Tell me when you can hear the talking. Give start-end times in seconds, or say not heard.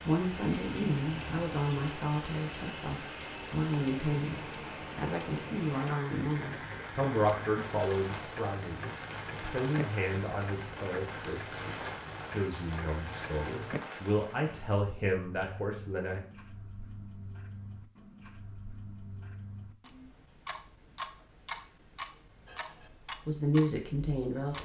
0.1-16.2, 23.2-24.6.